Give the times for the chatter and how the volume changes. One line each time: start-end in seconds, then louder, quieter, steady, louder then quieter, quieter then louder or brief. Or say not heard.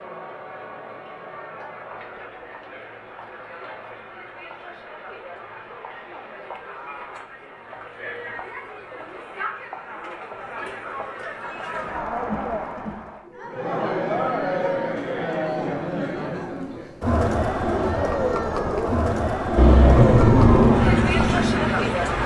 0.0-22.2 louder.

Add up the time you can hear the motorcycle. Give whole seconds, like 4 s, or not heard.
3 s.